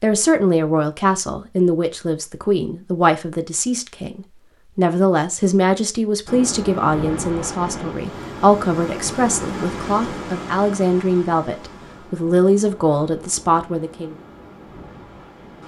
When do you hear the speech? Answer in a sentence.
You can hear the speech from 0.0 to 14.2 s.